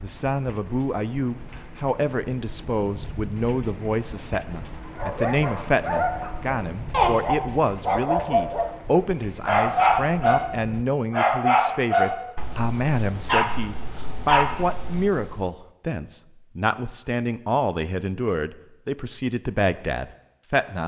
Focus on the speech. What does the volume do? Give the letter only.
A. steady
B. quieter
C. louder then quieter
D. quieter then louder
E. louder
A.